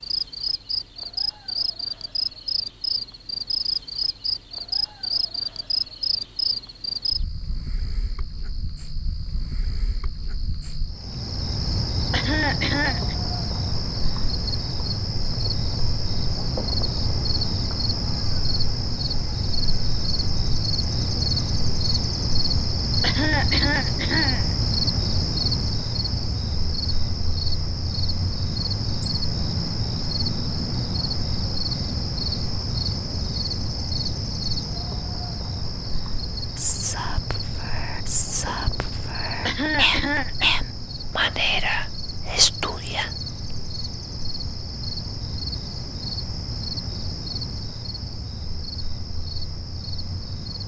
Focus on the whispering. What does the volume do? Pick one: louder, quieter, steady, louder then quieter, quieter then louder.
louder.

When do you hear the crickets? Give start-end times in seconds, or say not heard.
0.0-50.6.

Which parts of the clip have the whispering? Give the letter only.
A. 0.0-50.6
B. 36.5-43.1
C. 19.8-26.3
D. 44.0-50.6
B.